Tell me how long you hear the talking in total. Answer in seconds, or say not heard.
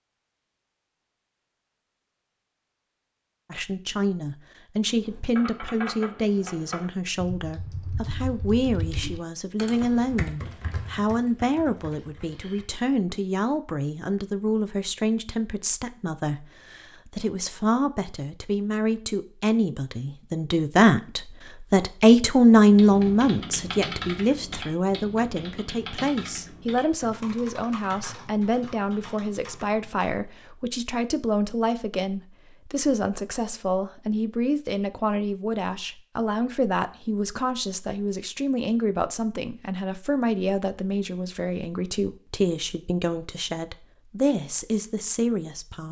42 s.